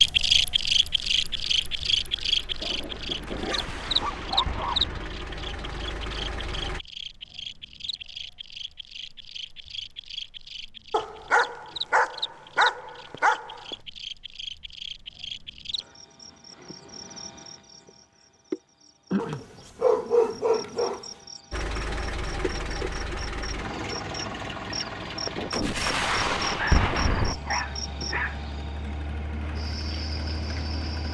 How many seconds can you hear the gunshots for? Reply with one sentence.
You can hear the gunshots for 4 seconds altogether.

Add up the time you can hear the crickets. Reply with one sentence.
You can hear the crickets for 31 seconds altogether.